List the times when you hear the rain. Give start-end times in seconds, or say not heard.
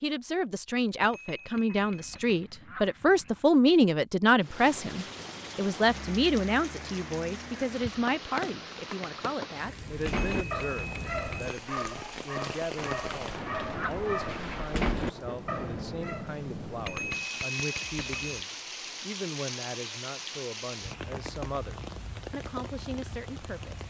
4.4-23.8.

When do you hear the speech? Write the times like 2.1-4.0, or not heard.
0.0-23.8.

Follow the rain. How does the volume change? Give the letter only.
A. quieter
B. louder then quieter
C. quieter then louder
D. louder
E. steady
E.